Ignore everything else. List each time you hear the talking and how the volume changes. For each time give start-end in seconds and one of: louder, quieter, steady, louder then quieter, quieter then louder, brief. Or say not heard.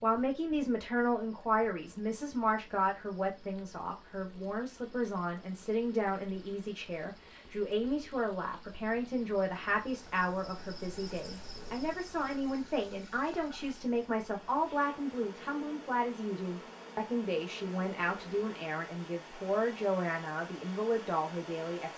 0.0-21.9 steady.